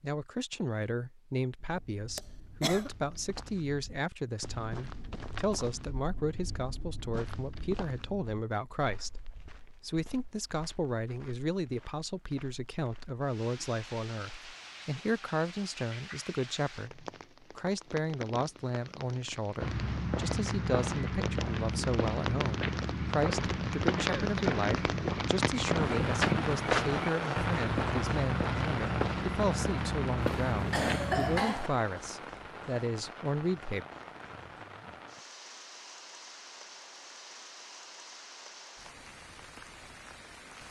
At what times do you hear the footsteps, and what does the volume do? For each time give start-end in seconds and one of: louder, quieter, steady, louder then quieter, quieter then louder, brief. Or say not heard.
1.6-13.2 louder then quieter
19.6-31.4 steady.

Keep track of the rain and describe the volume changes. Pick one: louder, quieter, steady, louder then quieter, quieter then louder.
louder then quieter.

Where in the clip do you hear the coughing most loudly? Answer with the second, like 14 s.
31 s.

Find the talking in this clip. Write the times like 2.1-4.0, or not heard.
0.0-33.9.